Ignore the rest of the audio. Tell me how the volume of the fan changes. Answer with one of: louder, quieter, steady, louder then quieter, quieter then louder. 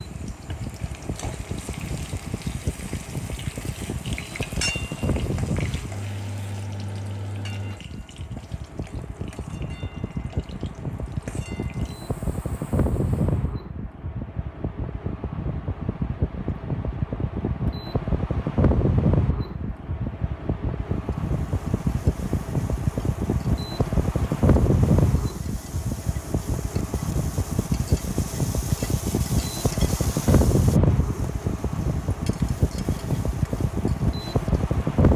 louder.